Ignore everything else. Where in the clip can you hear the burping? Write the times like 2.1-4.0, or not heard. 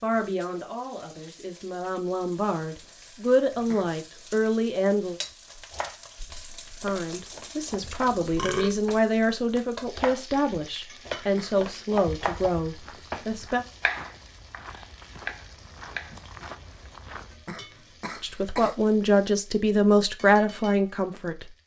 7.8-8.8.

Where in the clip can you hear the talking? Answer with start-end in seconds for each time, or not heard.
0.0-5.2, 6.8-13.7, 18.2-21.6.